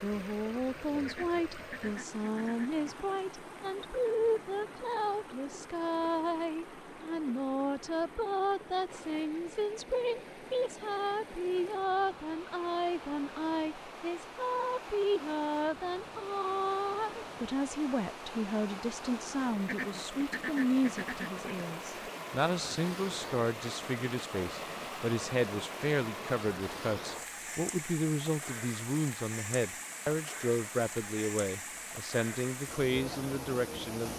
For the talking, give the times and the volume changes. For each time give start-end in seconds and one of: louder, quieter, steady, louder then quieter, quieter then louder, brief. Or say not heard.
0.0-34.1 steady.